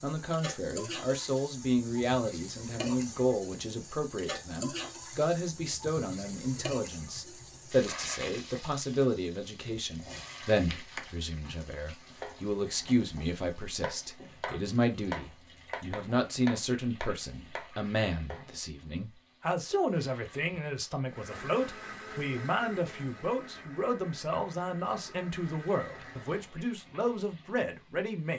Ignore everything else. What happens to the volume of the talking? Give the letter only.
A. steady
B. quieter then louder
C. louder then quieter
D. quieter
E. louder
A.